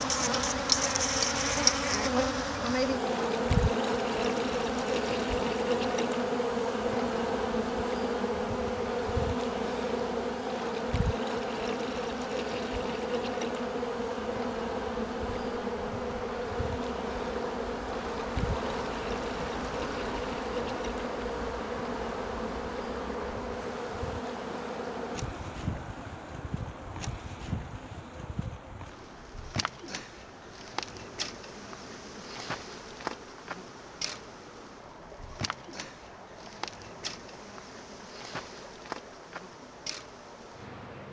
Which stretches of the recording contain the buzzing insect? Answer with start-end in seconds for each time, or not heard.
0.0-41.0.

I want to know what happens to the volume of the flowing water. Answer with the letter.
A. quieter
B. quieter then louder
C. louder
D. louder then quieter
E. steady
A.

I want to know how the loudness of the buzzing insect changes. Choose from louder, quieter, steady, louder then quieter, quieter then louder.
quieter.